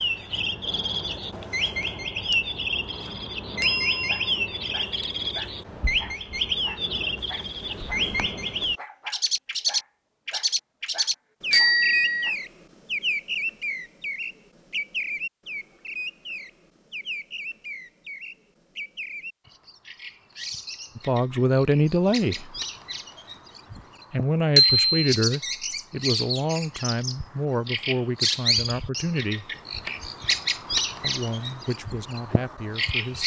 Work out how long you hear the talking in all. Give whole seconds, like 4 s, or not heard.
9 s.